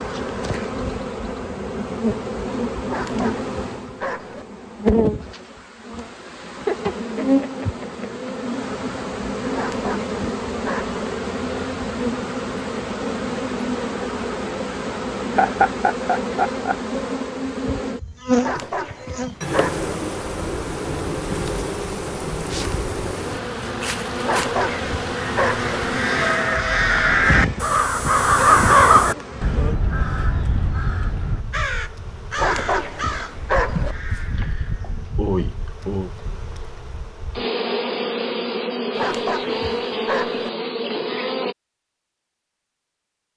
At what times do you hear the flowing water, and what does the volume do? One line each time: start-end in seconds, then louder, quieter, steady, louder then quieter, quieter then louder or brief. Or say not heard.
not heard.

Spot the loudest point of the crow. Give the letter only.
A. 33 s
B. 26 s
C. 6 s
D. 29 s
D.